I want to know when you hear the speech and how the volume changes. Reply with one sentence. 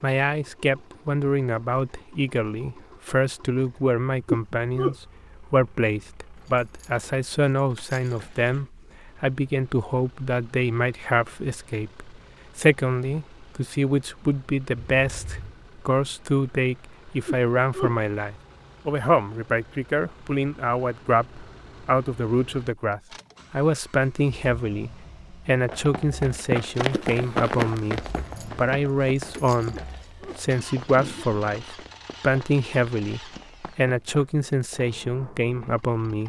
You can hear the speech from 0.0 to 36.2 s, at a steady volume.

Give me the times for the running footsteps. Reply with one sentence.
The running footsteps can be heard from 25.5 to 34.9 s.